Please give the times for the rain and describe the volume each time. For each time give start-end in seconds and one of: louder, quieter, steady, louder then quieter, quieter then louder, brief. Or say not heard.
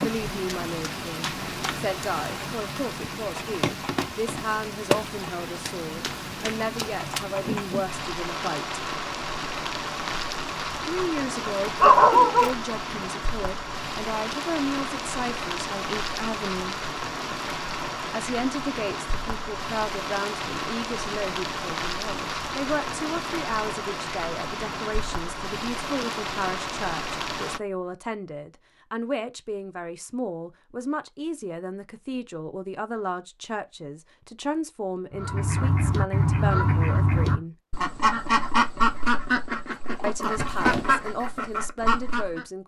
0.0-27.6 steady.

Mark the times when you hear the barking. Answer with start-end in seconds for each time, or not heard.
10.9-12.5.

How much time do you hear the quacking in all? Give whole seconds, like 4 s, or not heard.
7 s.